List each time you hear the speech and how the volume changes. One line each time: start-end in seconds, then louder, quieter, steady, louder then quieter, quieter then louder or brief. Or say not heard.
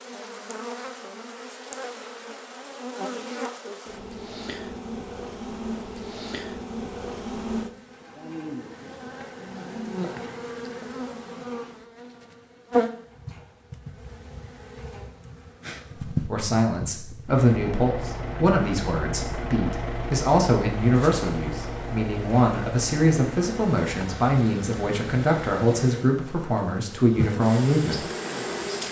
16.1-28.1 steady.